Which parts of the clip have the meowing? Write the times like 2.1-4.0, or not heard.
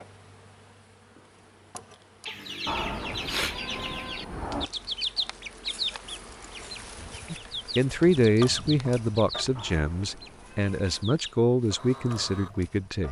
2.6-4.7, 9.6-11.1.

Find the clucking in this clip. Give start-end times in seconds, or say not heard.
2.2-12.7.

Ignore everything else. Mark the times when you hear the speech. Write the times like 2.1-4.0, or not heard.
7.3-13.0.